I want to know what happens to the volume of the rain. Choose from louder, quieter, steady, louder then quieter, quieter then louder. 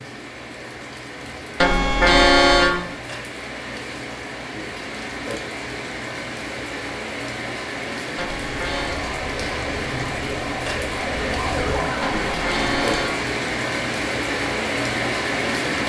louder.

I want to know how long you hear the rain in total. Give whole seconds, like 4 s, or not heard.
16 s.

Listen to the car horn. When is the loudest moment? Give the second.
2 s.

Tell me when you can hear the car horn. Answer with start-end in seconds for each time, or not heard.
1.6-2.8, 8.2-9.1, 12.0-13.2.